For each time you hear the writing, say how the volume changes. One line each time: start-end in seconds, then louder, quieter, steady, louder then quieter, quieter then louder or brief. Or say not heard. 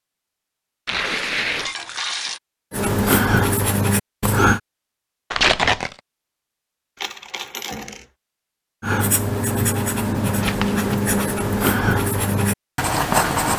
2.7-4.6 brief
8.8-13.5 steady.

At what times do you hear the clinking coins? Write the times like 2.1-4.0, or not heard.
1.6-2.4, 7.0-8.1.